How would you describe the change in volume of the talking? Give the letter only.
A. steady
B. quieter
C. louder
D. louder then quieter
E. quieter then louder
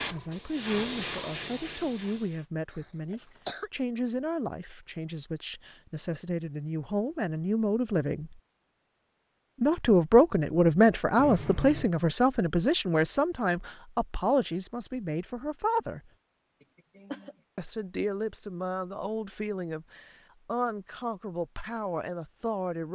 D.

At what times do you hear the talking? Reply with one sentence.
The talking can be heard from 0.1 to 8.3 s, from 9.6 to 16.1 s and from 17.6 to 22.8 s.